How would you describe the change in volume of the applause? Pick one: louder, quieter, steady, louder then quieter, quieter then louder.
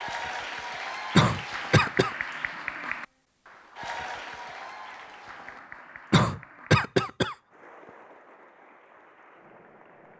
quieter.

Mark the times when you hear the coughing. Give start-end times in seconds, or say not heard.
1.1-2.1, 6.1-7.3.